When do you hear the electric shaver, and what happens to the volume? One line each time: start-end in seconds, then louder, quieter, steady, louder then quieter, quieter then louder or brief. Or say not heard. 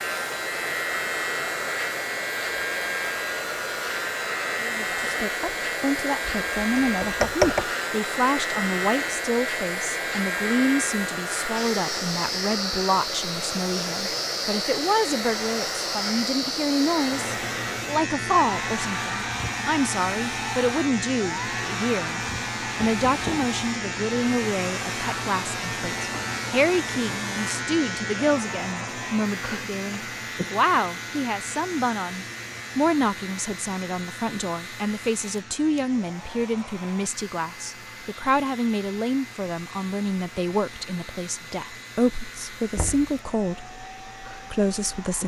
0.0-45.2 quieter.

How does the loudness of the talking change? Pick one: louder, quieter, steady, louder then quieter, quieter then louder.
steady.